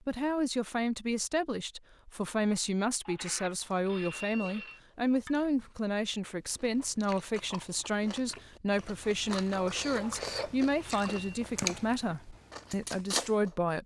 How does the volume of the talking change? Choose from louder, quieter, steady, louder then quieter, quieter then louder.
steady.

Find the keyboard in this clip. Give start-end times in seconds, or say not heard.
not heard.